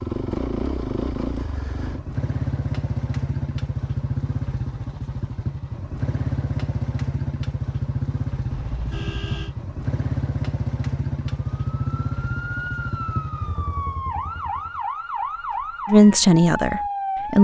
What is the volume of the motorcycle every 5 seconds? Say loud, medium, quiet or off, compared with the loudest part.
loud, loud, loud, off.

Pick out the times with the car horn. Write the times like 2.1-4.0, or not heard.
8.5-9.6.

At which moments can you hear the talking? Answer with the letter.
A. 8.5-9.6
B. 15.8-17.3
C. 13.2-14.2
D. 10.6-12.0
B.